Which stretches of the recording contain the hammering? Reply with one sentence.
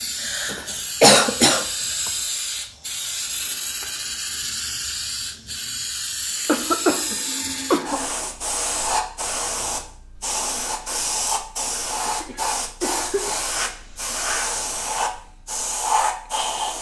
The hammering can't be heard in this clip.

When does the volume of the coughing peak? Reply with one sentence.
The volume of the coughing peaks at 1 second.